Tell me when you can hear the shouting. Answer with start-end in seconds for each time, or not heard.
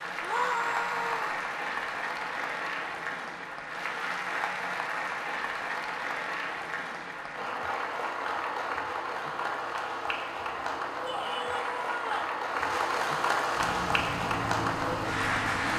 0.2-1.4, 11.1-12.3.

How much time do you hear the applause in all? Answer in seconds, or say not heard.
16 s.